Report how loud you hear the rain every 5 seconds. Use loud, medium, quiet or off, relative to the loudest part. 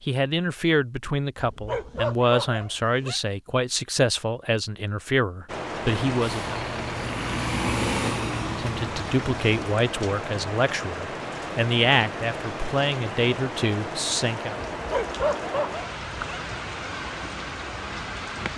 off, loud, loud, loud.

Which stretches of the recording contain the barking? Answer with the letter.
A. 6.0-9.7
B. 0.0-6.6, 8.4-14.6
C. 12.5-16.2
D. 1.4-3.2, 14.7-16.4
D.